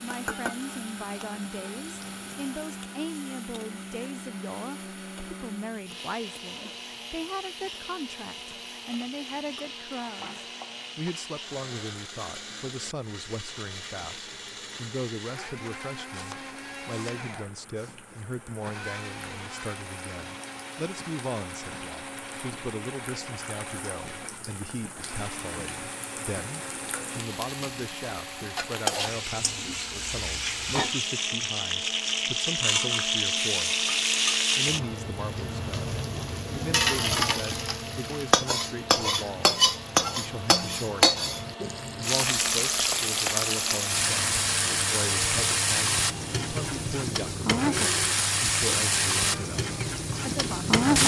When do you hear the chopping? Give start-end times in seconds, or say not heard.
16.1-17.3.